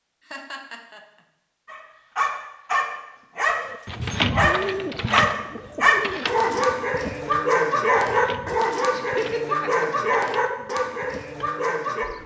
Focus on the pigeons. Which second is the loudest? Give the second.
4 s.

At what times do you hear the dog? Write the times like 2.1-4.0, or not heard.
1.6-12.1.